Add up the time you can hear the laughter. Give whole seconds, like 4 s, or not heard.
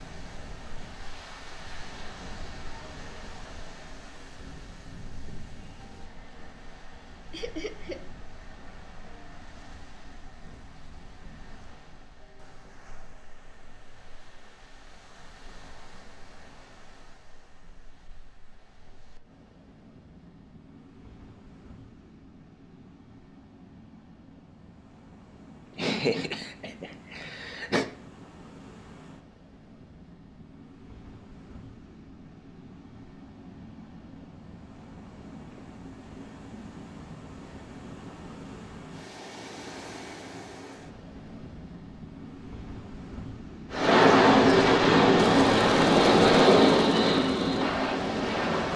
3 s.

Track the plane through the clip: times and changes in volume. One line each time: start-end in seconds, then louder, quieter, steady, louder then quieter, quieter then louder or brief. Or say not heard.
43.7-48.7 quieter.